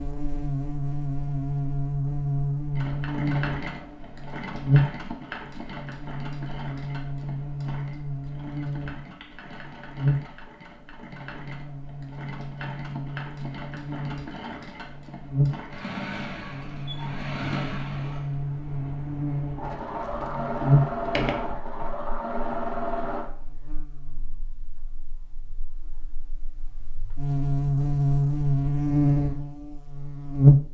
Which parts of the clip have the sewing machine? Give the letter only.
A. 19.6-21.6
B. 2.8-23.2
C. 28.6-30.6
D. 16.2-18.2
B.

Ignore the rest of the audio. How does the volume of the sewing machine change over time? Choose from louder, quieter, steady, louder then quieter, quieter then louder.
quieter then louder.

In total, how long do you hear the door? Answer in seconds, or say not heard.
2 s.